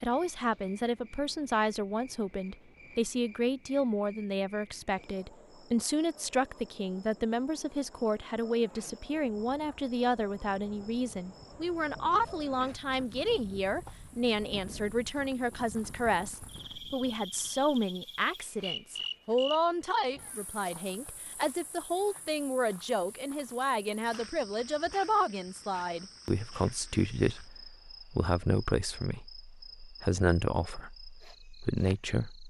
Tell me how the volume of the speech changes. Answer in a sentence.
The volume of the speech stays about the same.